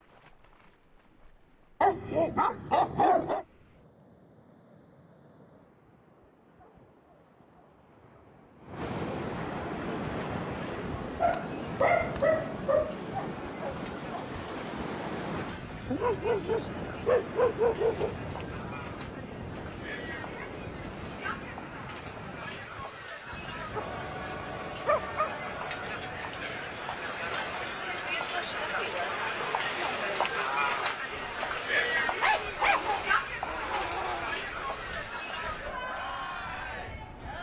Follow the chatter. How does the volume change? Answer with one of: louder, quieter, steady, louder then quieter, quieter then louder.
louder.